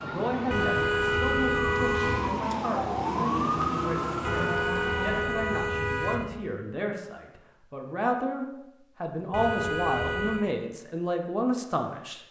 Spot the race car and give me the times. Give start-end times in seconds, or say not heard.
3.0-5.3.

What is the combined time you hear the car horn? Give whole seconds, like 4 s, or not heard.
5 s.